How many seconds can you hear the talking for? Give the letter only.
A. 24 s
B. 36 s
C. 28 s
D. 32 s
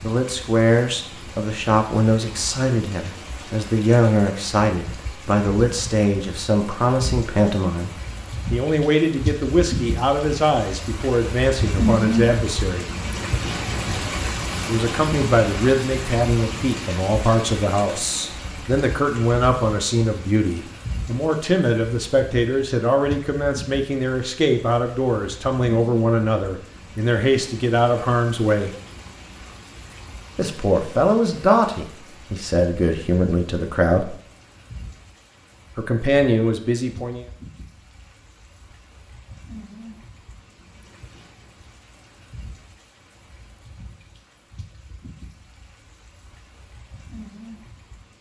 D.